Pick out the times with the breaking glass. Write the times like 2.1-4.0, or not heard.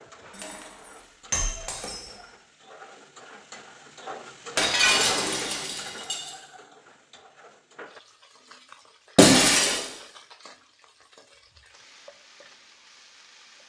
0.3-2.1, 4.5-6.3, 9.2-9.8.